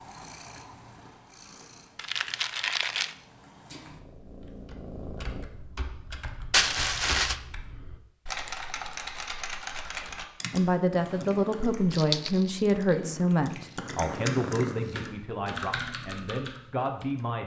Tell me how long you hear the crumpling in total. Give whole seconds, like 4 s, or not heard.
3 s.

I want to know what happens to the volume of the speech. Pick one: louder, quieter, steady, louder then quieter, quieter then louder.
quieter.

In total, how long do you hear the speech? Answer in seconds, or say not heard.
7 s.